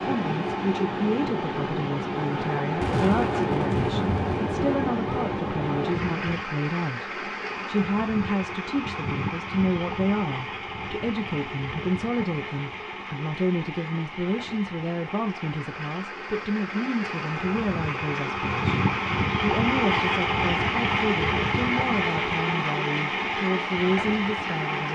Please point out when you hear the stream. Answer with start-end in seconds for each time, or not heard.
0.0-24.8.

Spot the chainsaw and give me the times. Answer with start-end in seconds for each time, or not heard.
not heard.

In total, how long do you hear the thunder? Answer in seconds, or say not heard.
4 s.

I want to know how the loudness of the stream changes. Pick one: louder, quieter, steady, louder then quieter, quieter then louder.
quieter then louder.